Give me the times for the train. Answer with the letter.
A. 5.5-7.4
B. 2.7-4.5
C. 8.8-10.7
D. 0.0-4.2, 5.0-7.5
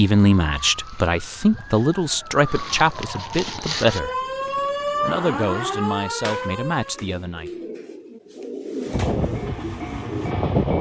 C.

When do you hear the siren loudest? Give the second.
5 s.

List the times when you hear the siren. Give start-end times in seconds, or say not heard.
0.0-7.0.